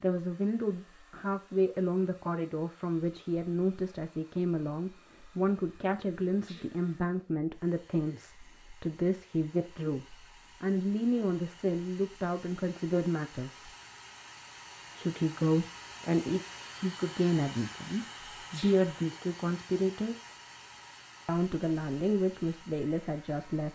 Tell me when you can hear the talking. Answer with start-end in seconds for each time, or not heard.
0.0-13.7, 14.9-20.3, 21.2-23.6.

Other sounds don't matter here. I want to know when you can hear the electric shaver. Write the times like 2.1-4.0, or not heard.
not heard.